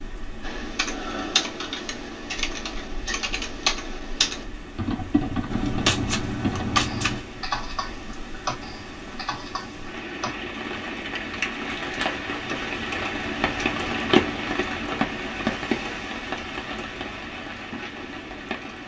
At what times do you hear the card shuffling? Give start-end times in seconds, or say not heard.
5.5-7.2.